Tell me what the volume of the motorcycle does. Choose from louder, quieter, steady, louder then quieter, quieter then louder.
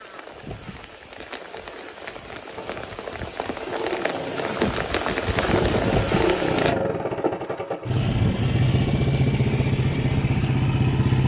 louder.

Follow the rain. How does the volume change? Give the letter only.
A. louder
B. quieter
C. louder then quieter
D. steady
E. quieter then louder
A.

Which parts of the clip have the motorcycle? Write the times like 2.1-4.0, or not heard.
2.5-11.2.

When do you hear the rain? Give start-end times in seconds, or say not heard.
0.0-6.8.